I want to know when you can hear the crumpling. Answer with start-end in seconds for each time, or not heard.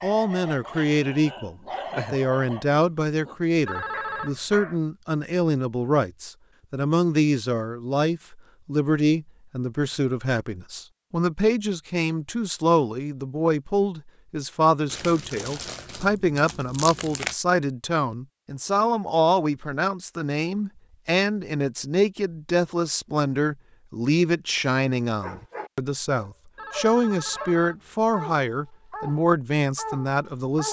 14.8-17.4.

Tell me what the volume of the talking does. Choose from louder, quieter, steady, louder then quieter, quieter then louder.
steady.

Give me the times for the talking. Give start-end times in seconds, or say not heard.
0.0-30.6.